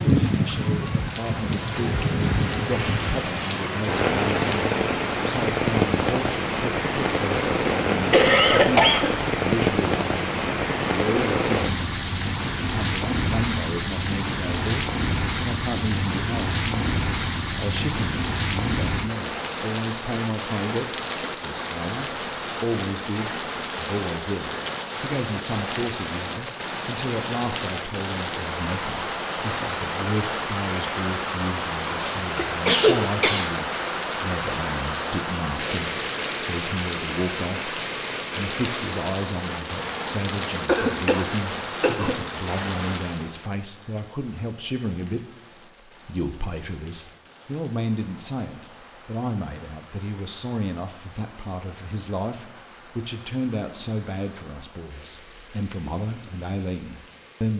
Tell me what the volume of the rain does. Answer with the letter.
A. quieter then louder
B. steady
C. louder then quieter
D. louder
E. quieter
E.